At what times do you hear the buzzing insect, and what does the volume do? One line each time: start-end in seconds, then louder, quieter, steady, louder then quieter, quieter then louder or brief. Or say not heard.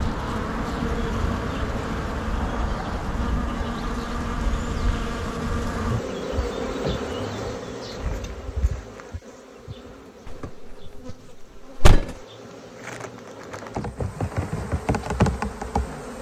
0.0-16.1 quieter then louder.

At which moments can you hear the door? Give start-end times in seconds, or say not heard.
10.2-12.2.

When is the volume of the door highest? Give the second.
12 s.